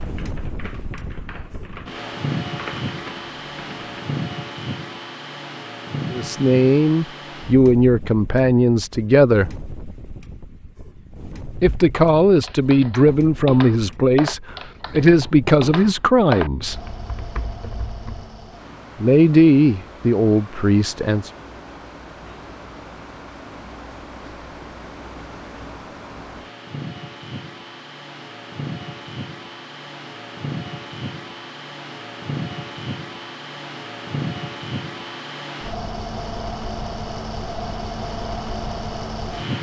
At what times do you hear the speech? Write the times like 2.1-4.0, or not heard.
6.1-9.7, 11.6-16.8, 19.0-21.3.